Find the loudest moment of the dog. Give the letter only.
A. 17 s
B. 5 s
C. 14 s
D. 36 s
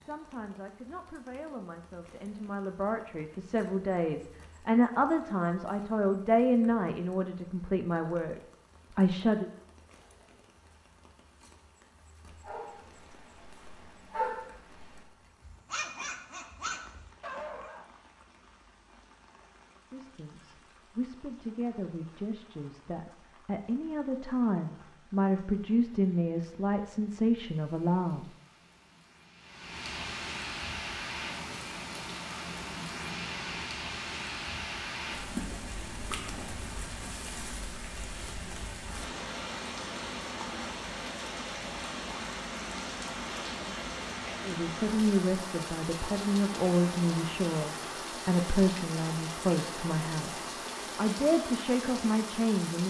C.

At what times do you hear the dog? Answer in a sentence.
The dog can be heard from 12.3 to 17.9 s.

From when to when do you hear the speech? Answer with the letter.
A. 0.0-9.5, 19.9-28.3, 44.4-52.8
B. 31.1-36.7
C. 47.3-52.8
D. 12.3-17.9
A.